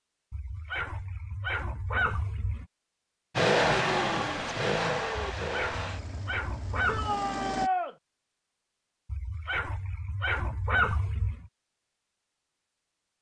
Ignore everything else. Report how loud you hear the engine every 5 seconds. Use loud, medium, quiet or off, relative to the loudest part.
loud, medium, off.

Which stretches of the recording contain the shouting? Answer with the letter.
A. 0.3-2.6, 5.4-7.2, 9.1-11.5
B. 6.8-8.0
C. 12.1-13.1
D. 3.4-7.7
B.